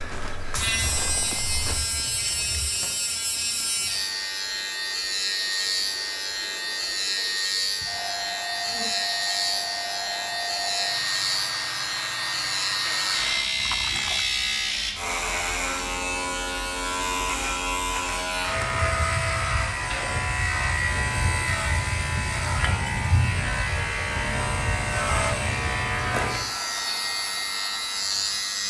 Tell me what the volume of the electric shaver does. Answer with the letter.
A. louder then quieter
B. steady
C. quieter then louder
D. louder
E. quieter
B.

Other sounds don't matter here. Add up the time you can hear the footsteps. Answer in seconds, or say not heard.
2 s.